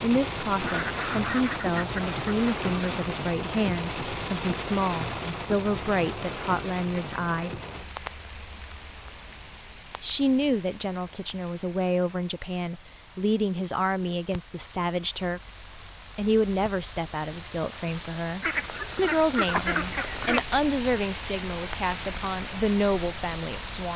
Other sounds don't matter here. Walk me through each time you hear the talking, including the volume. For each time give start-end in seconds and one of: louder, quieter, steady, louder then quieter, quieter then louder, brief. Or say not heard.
0.0-7.5 steady
10.0-23.9 steady.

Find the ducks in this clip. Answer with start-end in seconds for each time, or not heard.
0.6-3.0, 18.4-20.4.